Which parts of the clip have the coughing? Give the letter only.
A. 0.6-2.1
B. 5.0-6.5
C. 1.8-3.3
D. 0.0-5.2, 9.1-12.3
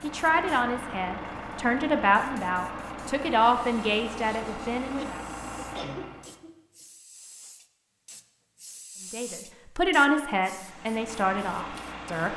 B.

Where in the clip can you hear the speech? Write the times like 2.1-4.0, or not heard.
0.0-5.2, 9.1-12.3.